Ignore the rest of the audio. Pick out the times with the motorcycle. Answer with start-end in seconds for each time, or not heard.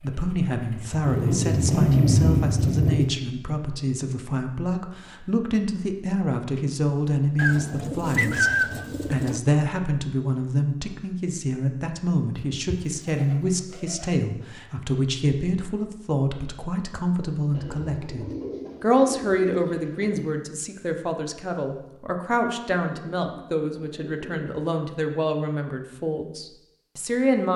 0.0-3.0.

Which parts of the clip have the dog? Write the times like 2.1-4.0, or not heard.
not heard.